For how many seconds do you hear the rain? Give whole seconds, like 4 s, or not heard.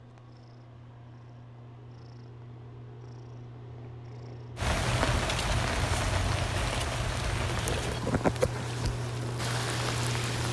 6 s.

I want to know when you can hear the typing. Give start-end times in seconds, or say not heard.
not heard.